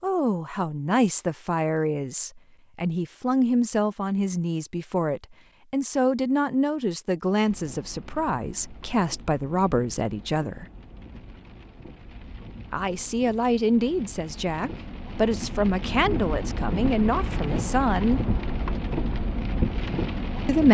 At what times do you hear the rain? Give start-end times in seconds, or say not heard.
7.4-20.6.